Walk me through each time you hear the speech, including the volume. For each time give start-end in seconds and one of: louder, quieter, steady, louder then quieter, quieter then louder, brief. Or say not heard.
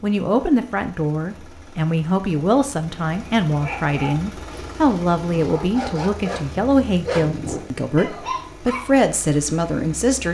0.0-10.2 steady.